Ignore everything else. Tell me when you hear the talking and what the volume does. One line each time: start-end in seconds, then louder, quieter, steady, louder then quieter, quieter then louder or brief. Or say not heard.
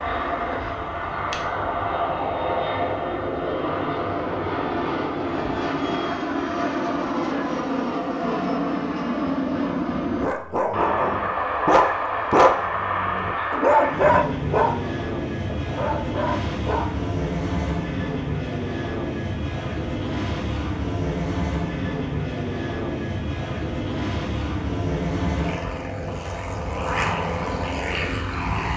not heard.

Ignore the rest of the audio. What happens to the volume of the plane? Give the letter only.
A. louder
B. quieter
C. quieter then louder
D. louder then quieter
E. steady
E.